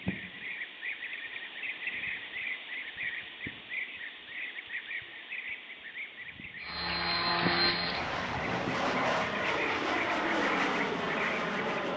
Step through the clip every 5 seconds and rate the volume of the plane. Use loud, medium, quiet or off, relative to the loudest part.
off, loud, loud.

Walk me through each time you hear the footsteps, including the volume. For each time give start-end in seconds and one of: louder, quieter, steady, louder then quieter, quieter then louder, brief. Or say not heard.
not heard.